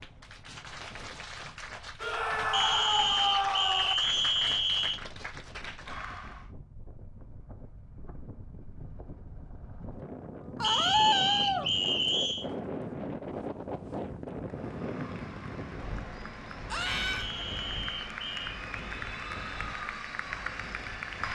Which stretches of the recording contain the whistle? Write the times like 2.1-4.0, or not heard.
2.5-5.0, 10.6-12.4, 17.1-18.5.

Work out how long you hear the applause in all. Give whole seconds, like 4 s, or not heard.
13 s.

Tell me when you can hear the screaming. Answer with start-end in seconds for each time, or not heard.
2.0-4.0, 10.6-11.7, 16.7-17.3.